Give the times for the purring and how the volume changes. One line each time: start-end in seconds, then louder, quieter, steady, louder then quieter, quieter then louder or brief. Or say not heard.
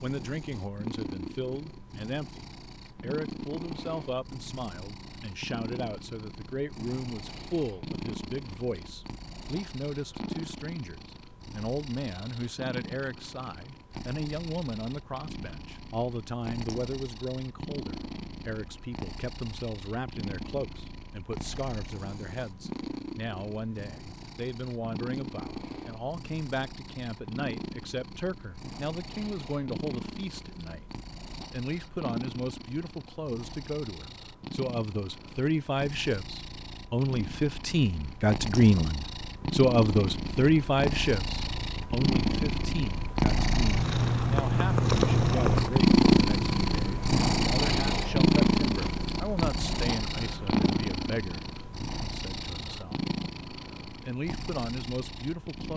0.0-55.7 louder.